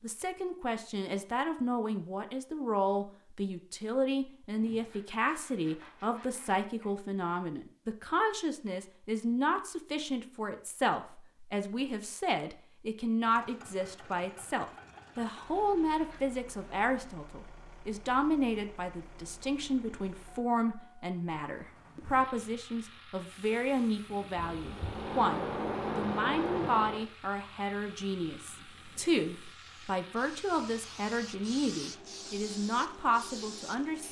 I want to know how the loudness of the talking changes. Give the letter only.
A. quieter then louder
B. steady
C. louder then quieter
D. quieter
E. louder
B.